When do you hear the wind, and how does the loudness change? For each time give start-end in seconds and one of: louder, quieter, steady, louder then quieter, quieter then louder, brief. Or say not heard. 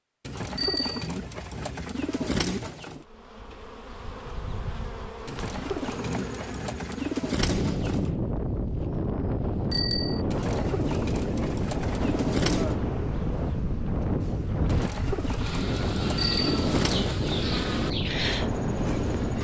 7.4-19.4 steady.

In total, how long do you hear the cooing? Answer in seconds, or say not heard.
11 s.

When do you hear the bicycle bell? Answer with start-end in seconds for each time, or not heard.
0.6-1.1, 9.7-10.2, 16.1-16.7.